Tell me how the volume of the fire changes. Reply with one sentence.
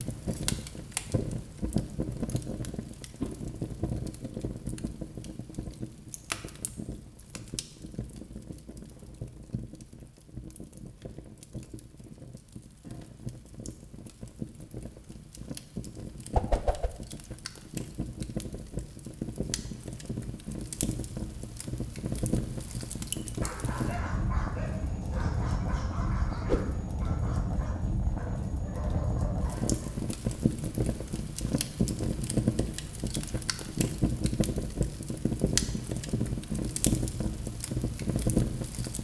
The loudness of the fire goes down, then up.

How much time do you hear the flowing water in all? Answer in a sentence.
The flowing water can't be heard in this clip.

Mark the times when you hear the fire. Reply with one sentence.
The fire can be heard from 0.0 to 38.9 s.